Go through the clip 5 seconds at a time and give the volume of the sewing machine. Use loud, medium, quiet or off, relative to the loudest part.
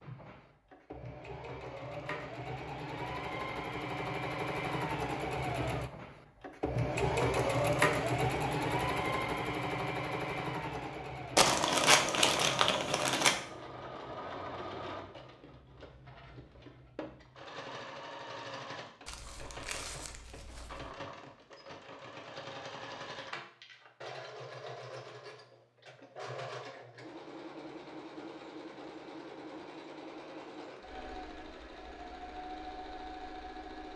medium, loud, medium, quiet, quiet, quiet, quiet.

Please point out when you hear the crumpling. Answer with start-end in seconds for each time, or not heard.
11.3-13.3, 19.1-20.9.